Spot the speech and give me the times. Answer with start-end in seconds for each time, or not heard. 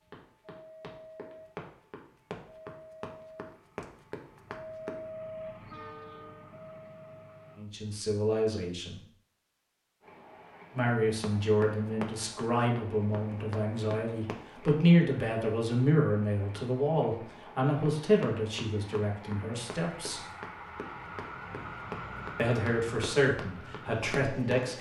7.5-8.9, 10.7-20.2, 22.4-24.7.